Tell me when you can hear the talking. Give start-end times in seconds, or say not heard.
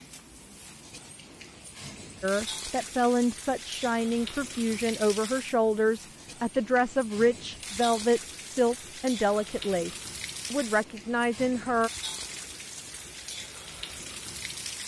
2.2-11.9.